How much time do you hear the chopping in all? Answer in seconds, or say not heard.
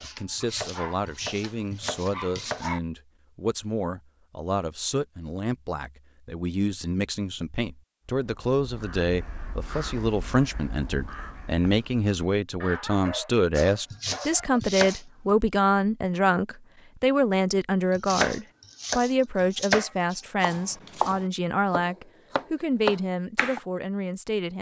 10 s.